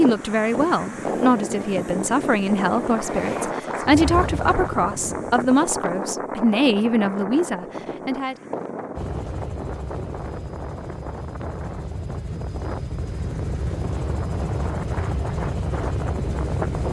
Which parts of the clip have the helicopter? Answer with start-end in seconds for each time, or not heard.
0.0-5.5, 8.9-16.8.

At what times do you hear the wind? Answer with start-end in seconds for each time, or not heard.
0.0-16.8.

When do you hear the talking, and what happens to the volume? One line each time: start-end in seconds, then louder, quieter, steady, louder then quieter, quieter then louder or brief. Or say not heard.
0.0-8.3 steady.